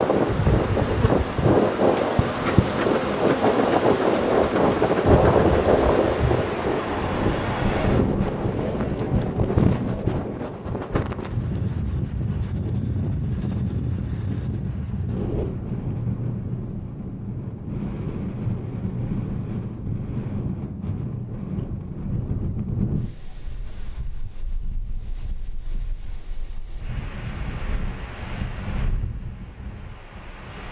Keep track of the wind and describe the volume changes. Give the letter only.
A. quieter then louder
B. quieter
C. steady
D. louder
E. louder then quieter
B.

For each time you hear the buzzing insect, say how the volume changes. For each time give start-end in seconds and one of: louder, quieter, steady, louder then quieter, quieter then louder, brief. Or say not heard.
0.0-6.5 steady.